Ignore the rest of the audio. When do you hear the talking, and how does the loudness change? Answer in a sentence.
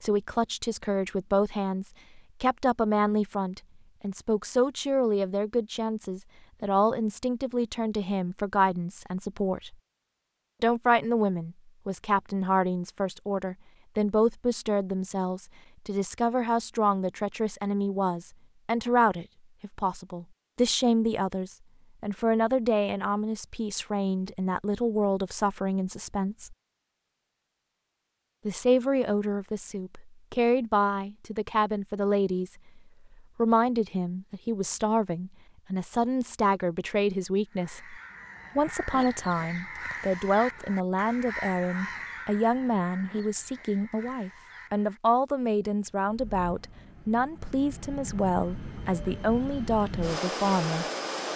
You can hear the talking from 0.0 to 9.8 s, at a steady volume; from 10.6 to 26.6 s, at a steady volume; and from 28.4 to 50.9 s, at a steady volume.